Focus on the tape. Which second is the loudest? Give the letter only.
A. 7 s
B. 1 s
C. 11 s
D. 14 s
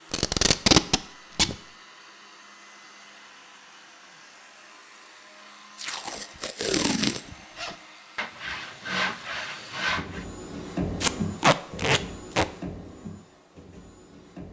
B.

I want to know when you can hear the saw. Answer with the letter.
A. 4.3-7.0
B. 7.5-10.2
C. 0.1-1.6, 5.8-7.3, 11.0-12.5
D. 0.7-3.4
B.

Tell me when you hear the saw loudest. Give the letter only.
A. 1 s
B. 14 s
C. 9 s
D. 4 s
C.